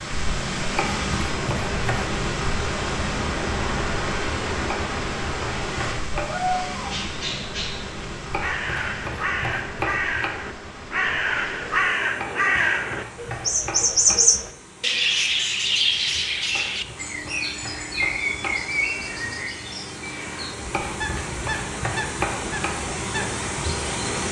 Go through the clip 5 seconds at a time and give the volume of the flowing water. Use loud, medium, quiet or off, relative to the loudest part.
loud, medium, quiet, quiet, loud.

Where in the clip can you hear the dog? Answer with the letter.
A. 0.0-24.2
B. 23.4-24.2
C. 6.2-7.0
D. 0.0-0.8
C.